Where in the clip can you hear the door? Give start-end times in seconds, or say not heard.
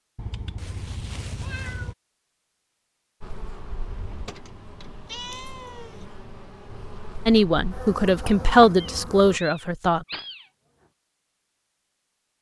4.0-5.0.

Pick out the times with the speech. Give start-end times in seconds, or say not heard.
7.2-10.1.